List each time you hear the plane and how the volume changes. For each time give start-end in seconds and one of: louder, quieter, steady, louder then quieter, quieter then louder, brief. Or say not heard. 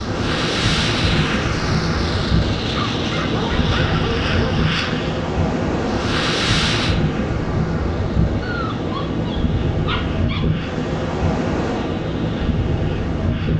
0.0-13.5 quieter.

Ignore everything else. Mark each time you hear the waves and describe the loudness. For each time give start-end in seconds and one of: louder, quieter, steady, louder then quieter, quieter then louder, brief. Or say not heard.
0.0-13.5 steady.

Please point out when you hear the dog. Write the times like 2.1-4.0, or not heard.
2.7-4.8, 8.4-10.4.